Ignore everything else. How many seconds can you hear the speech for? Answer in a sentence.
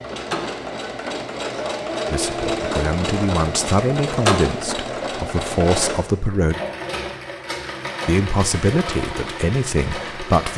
You can hear the speech for 7 seconds altogether.